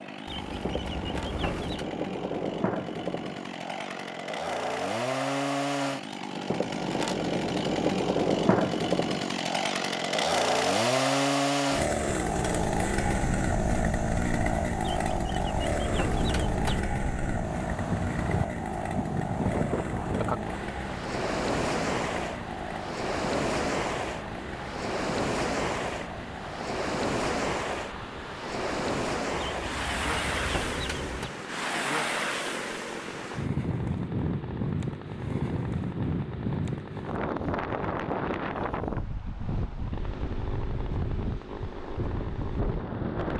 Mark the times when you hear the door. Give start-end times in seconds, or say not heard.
not heard.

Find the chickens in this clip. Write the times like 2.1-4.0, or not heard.
0.2-1.9, 14.9-16.8, 29.4-31.3.